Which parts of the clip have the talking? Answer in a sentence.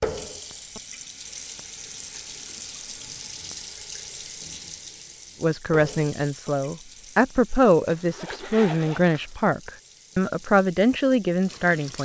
The talking can be heard from 5.4 to 12.0 s.